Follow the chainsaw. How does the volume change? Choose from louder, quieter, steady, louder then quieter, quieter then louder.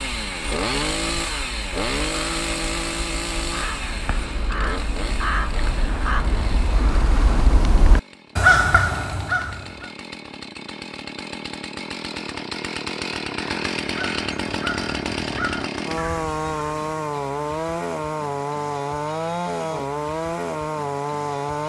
quieter then louder.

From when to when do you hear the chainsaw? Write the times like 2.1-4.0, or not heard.
0.0-21.6.